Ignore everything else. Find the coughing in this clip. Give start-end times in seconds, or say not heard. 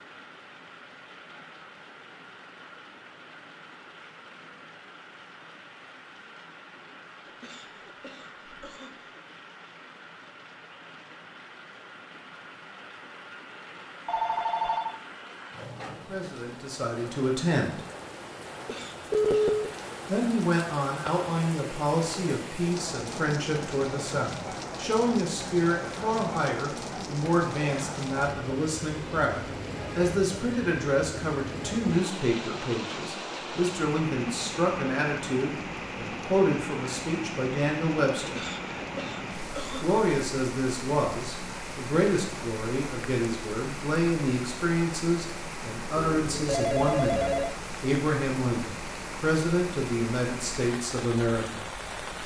7.2-9.2, 18.5-19.6, 38.1-40.0.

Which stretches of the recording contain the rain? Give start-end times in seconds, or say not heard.
0.0-52.2.